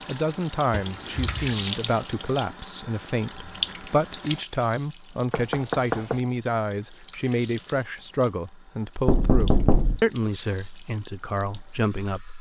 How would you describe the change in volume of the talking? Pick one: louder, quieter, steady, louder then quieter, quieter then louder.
steady.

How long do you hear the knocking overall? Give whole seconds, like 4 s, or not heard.
3 s.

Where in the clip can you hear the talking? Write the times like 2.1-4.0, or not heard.
0.1-12.3.